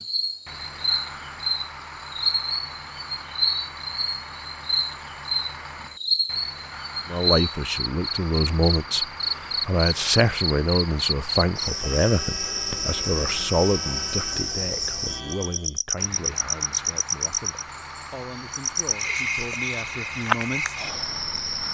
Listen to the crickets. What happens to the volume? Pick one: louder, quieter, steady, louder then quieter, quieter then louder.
steady.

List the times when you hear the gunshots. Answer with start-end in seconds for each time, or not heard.
not heard.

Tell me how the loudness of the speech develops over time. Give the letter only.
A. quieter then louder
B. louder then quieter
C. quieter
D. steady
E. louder
C.